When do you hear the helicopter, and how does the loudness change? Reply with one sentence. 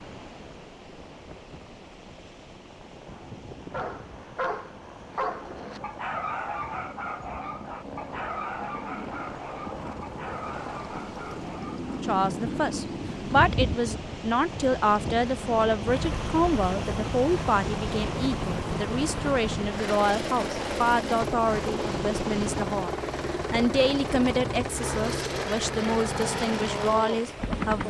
The helicopter can be heard from 0.0 to 27.8 s, getting louder.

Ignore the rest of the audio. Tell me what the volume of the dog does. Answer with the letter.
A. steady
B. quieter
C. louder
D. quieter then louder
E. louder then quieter
B.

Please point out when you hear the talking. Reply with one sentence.
You can hear the talking from 12.0 to 27.8 s.